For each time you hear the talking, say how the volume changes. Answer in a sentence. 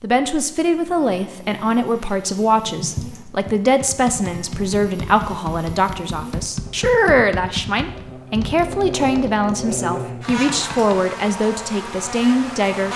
The talking can be heard from 0.0 to 12.9 s, at a steady volume.